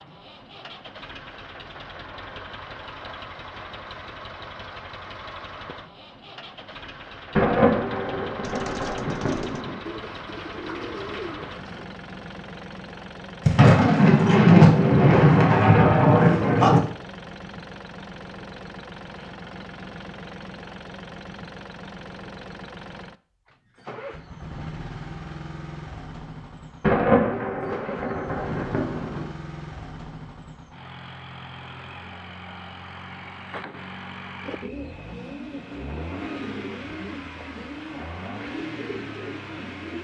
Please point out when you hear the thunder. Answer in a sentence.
The thunder can be heard from 7.3 to 9.8 s, from 13.4 to 16.8 s and from 26.8 to 29.3 s.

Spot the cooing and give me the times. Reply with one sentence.
You can hear the cooing from 8.4 to 11.8 s and from 34.5 to 39.9 s.